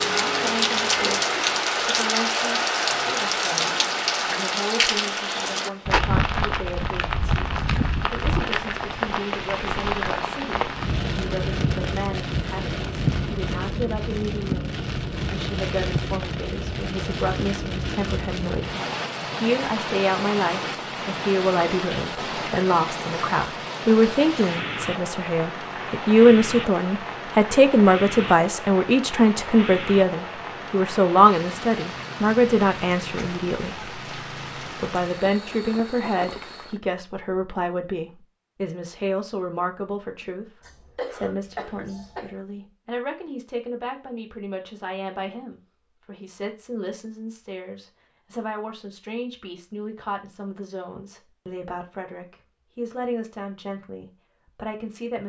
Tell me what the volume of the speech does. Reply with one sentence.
The volume of the speech goes up, then down.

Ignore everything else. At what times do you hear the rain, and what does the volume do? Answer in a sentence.
The rain can be heard from 0.0 to 36.8 s, getting quieter.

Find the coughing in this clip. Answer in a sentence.
The coughing can be heard from 40.6 to 42.4 s.